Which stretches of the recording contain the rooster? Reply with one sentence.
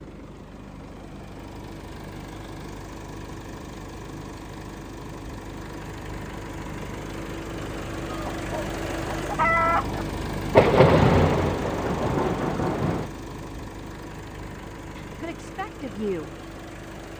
The rooster can be heard from 8.1 to 10.1 s.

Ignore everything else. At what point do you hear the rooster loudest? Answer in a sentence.
The loudest moment of the rooster is at 10 seconds.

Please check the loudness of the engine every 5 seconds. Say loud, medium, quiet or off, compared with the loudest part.
medium, loud, loud, medium.